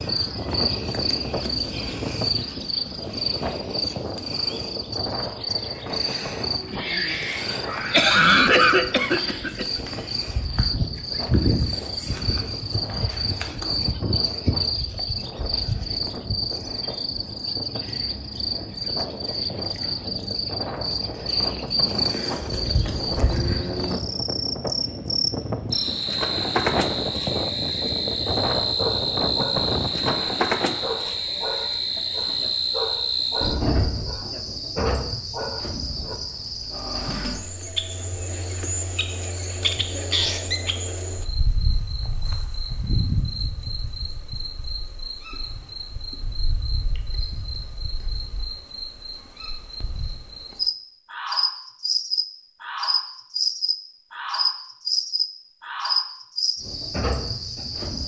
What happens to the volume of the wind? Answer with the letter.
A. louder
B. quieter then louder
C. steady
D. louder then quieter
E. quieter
B.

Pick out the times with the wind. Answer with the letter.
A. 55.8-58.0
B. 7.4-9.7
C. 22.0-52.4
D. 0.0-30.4
D.